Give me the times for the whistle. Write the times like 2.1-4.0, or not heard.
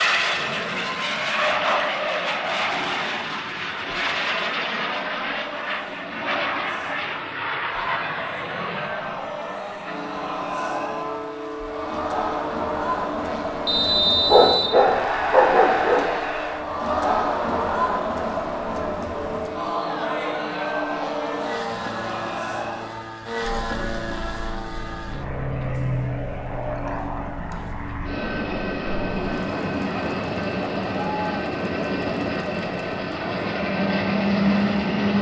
13.7-14.8.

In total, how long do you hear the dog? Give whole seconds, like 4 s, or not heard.
2 s.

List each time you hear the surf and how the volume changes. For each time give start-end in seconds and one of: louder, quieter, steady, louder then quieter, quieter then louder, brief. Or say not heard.
not heard.